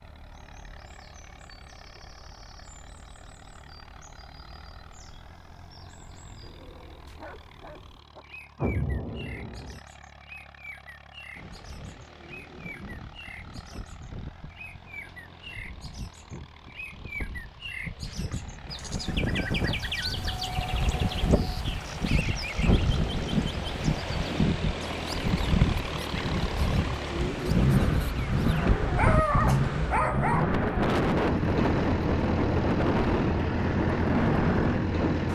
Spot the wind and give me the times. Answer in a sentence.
The wind can be heard from 11.3 to 35.2 s.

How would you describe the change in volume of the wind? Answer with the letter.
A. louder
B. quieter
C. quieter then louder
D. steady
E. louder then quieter
A.